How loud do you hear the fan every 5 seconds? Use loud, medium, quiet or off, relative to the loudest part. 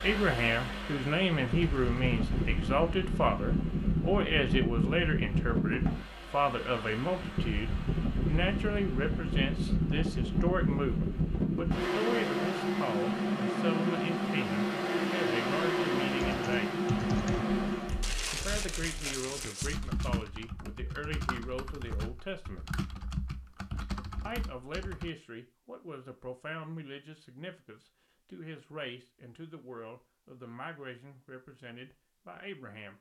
loud, loud, loud, loud, off, off, off.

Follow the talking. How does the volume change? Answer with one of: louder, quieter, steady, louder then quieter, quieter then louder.
quieter.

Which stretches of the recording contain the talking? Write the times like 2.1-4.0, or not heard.
0.0-16.8, 18.3-22.7, 24.2-32.9.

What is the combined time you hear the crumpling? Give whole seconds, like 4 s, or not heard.
3 s.